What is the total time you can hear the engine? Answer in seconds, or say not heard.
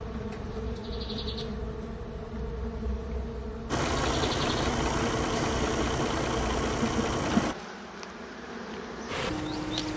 4 s.